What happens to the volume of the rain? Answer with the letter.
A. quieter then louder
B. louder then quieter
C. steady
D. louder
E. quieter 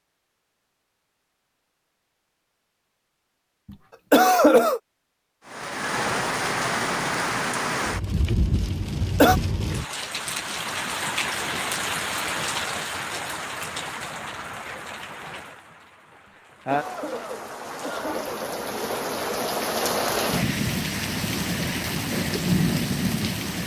A.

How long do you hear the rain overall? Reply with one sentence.
The rain can be heard for 18 seconds in total.